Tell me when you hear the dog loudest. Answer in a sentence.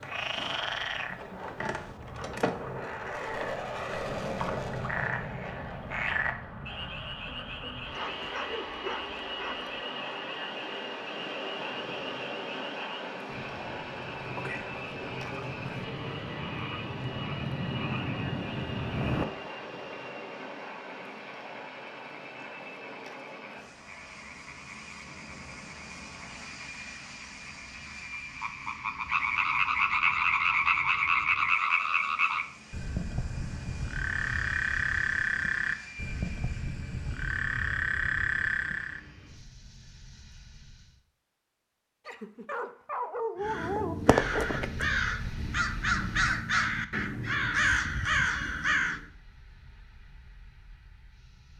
The volume of the dog peaks at 43 seconds.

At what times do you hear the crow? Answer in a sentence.
The crow can be heard from 43.4 to 49.0 s.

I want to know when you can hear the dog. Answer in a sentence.
You can hear the dog from 8.0 to 9.8 s and from 42.0 to 44.0 s.